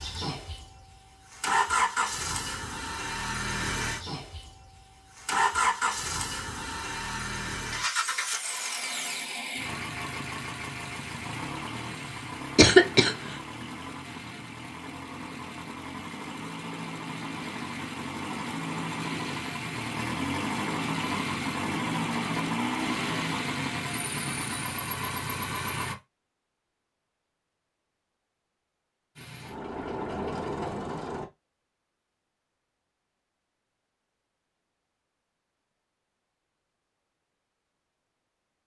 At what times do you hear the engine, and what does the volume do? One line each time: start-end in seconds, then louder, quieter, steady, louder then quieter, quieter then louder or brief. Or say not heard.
0.0-25.9 quieter then louder
29.1-31.2 brief.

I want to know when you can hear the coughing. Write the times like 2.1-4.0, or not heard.
12.6-13.2.